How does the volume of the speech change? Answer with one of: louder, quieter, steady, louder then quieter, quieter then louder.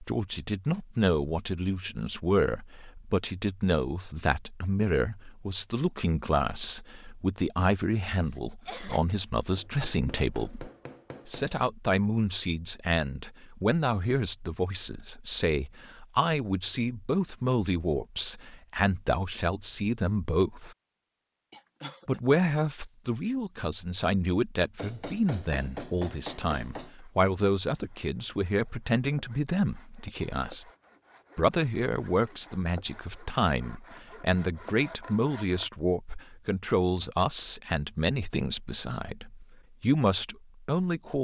steady.